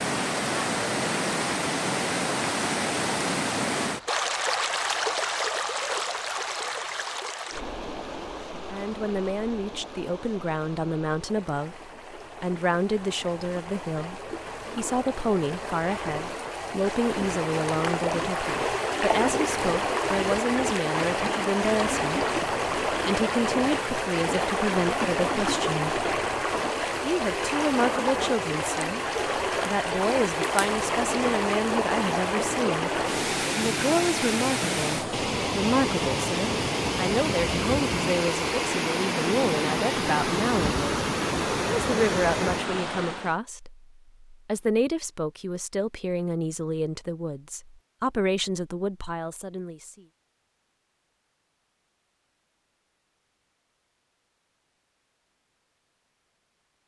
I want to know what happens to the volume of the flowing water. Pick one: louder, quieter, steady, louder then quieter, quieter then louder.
quieter then louder.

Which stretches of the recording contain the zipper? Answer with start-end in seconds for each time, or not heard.
not heard.